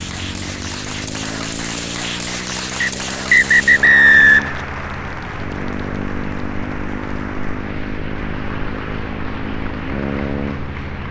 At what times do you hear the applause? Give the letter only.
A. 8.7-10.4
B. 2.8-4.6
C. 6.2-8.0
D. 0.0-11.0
D.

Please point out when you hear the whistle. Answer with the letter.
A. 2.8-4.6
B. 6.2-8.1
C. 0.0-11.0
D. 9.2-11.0
A.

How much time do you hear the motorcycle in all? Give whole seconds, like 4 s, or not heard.
11 s.